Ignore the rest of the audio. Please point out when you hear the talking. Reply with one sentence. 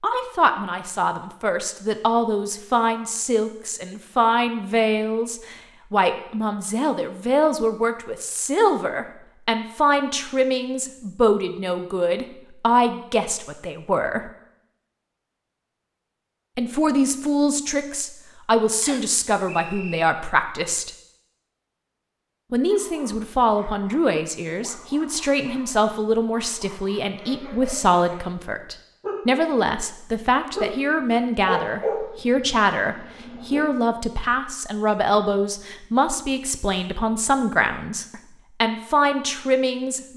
You can hear the talking from 0.0 to 14.3 s, from 16.6 to 20.9 s and from 22.5 to 40.1 s.